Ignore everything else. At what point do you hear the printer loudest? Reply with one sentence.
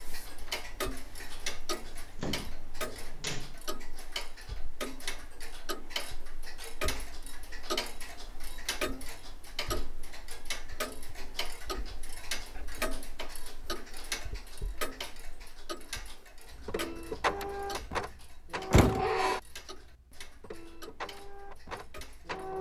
The volume of the printer peaks at 19 seconds.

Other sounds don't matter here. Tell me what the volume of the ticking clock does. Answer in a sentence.
The loudness of the ticking clock goes down.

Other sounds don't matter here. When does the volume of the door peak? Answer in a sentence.
The loudest moment of the door is at 19 seconds.